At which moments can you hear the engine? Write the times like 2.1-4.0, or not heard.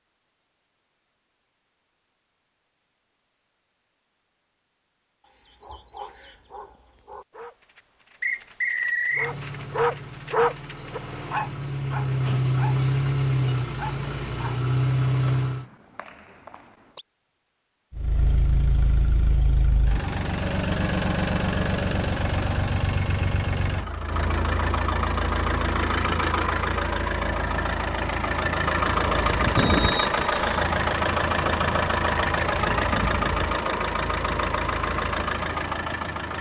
9.2-15.7, 17.9-36.3.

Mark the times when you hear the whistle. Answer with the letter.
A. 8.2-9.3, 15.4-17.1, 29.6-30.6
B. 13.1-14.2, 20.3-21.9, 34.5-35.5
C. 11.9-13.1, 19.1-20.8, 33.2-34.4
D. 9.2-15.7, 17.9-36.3
A.